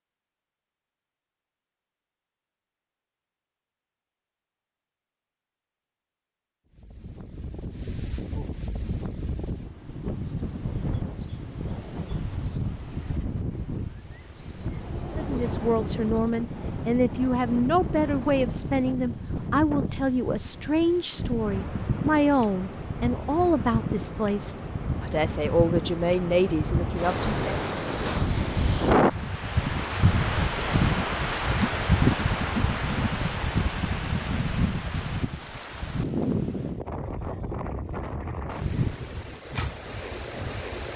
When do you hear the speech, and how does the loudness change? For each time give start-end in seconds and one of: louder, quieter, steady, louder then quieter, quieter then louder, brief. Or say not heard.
15.1-27.6 steady.